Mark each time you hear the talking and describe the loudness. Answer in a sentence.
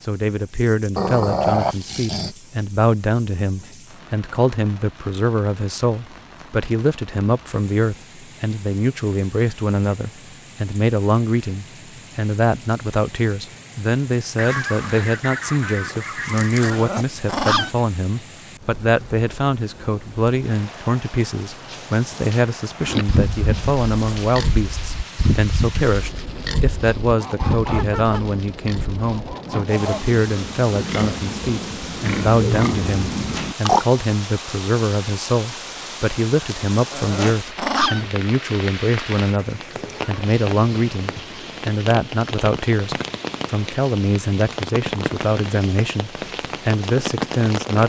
You can hear the talking from 0.0 to 47.8 s, at a steady volume.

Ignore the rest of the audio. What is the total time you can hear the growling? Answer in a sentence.
The growling can be heard for 4 seconds in total.